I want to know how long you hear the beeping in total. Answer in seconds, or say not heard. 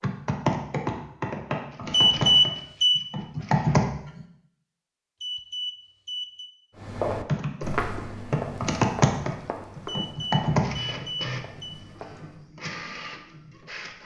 4 s.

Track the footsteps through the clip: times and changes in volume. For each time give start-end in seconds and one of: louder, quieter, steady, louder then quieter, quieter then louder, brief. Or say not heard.
6.8-12.4 quieter.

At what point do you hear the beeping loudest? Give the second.
2 s.